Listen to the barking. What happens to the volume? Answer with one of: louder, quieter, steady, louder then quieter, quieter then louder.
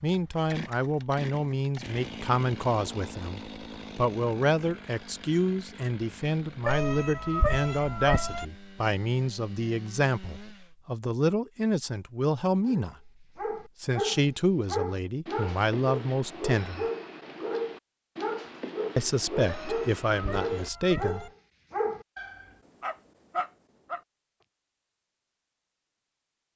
steady.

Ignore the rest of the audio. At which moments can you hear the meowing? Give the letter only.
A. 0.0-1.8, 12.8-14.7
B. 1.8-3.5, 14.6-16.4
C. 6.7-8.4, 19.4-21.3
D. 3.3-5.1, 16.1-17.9
C.